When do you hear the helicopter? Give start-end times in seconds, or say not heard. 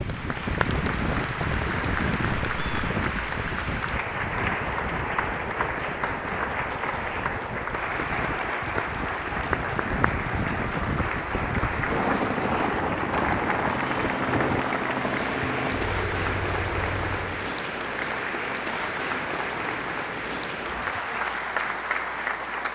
11.7-17.4.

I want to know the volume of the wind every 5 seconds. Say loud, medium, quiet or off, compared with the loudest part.
loud, medium, loud, off, off.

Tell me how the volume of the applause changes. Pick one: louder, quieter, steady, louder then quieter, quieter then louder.
steady.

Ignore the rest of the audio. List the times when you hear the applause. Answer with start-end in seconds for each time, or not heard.
0.0-22.7.